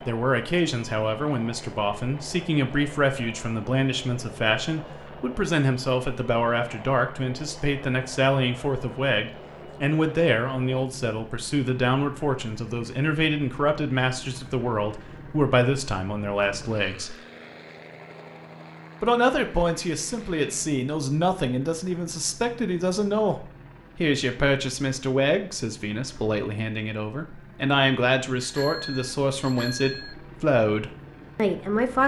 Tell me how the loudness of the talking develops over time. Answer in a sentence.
The volume of the talking stays about the same.